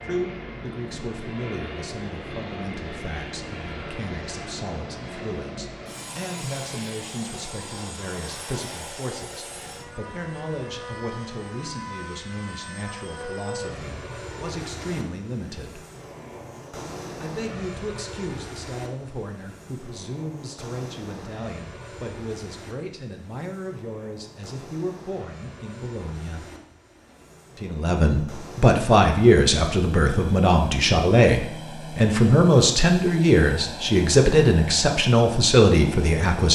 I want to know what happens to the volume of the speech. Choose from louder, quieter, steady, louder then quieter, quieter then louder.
louder.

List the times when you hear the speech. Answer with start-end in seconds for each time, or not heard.
0.0-15.8, 17.2-26.4, 27.6-36.4.